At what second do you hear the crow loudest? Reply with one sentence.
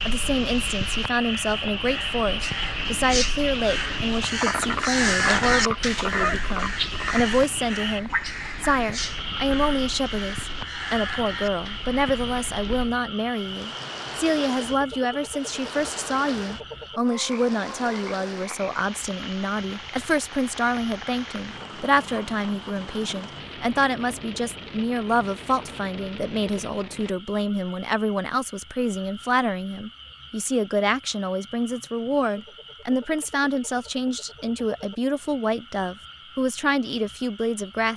The loudest moment of the crow is at 5 seconds.